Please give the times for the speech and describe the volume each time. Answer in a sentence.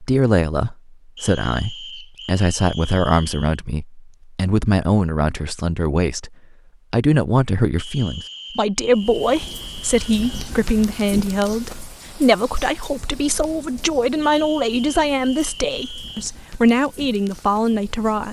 The speech can be heard from 0.0 to 18.2 s, at a steady volume.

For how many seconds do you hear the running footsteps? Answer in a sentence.
The running footsteps can't be heard in this clip.